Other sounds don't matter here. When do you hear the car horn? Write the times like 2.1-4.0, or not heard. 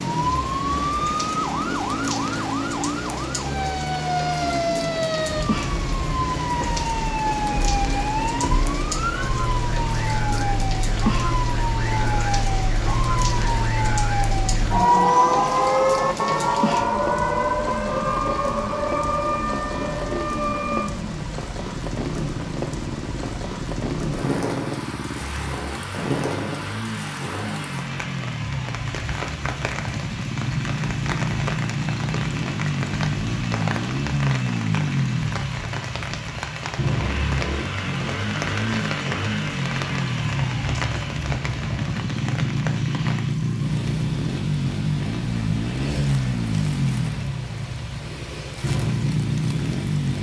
not heard.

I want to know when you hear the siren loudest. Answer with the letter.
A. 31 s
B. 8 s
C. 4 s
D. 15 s
D.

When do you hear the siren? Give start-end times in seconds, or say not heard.
0.0-20.9.